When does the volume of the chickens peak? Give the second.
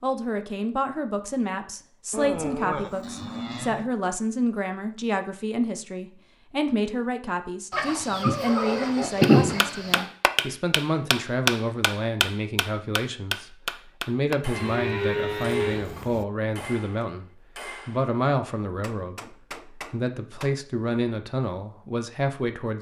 9 s.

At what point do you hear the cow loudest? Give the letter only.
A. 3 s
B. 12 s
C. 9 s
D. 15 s
D.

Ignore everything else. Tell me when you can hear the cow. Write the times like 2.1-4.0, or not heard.
2.1-3.9, 14.6-16.2.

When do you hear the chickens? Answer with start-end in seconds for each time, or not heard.
7.7-10.1.